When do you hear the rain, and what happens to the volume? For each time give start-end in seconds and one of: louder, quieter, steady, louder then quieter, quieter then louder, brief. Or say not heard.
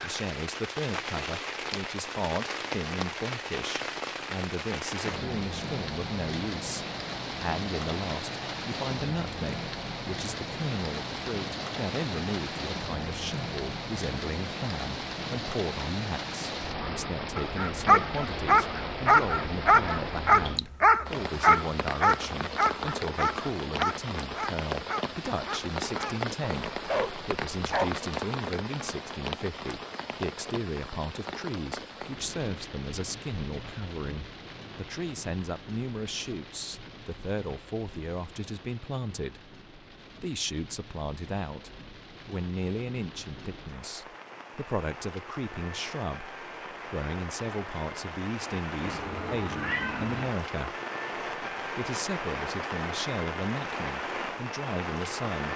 0.0-55.5 quieter then louder.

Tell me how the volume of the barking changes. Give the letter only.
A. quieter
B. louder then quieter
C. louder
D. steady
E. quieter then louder
A.